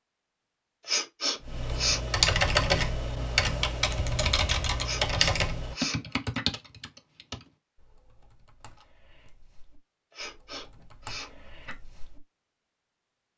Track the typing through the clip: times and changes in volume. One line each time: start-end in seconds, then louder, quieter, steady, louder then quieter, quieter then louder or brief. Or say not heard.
1.4-12.2 quieter then louder.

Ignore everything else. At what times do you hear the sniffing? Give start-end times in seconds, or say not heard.
0.8-2.1, 4.8-6.5, 10.2-11.8.